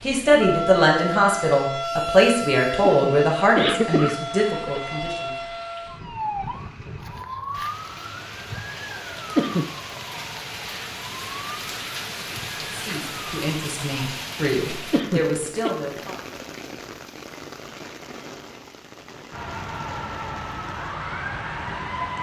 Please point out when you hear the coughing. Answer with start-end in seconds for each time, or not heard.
2.8-4.8, 9.3-9.8, 14.9-15.7.